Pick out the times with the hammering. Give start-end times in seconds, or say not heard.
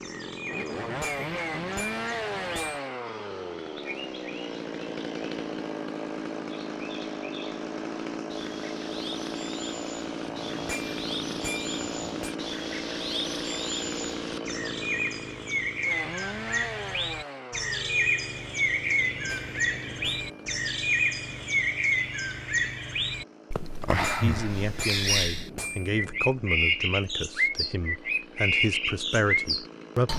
0.6-2.8, 10.2-12.3, 19.1-20.6, 23.6-26.3.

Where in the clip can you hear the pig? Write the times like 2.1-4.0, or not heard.
not heard.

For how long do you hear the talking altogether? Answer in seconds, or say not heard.
6 s.